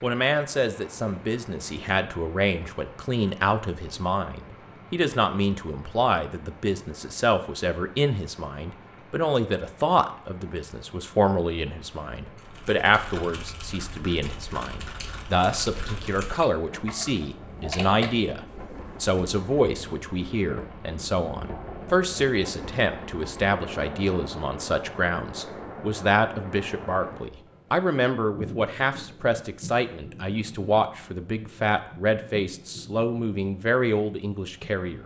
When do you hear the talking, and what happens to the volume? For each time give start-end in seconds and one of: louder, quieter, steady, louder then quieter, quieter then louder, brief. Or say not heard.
0.0-35.0 steady.